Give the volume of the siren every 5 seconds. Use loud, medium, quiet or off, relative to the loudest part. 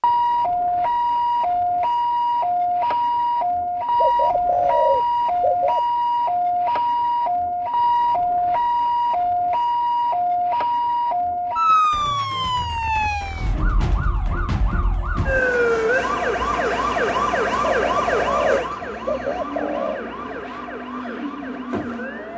loud, loud, loud, loud, medium.